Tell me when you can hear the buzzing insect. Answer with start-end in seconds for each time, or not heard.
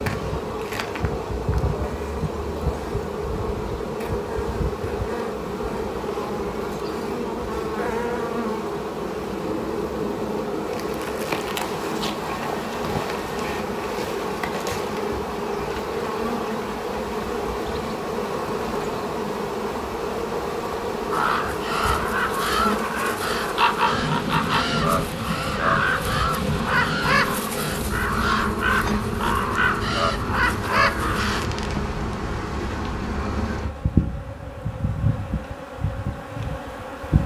0.0-37.2.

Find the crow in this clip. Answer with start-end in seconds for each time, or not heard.
21.1-31.4.